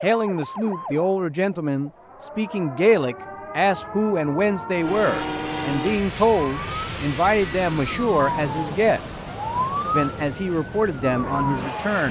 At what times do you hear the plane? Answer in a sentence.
The plane can be heard from 4.8 to 12.0 s.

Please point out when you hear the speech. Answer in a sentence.
The speech can be heard from 0.0 to 9.1 s and from 9.9 to 12.0 s.